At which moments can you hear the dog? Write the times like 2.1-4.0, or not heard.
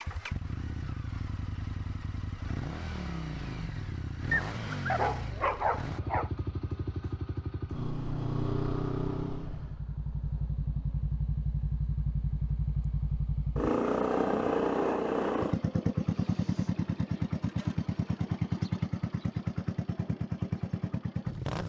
4.3-6.3.